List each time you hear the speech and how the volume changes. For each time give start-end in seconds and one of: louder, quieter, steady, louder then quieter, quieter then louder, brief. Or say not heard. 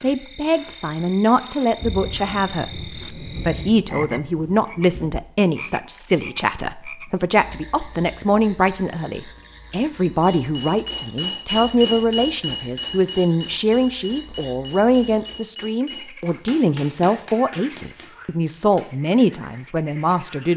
0.0-20.5 steady.